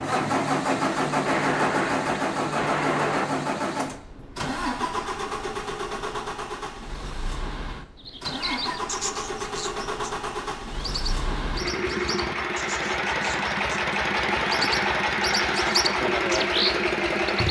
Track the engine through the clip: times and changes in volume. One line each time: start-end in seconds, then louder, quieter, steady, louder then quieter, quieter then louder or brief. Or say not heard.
0.0-17.4 quieter then louder.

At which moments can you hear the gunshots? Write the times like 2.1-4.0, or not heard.
1.2-3.2.